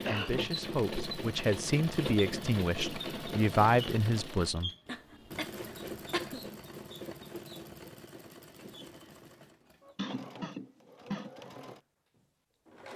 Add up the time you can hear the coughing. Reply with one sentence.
The coughing can be heard for 3 seconds in total.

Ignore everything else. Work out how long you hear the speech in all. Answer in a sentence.
The speech can be heard for 5 seconds in total.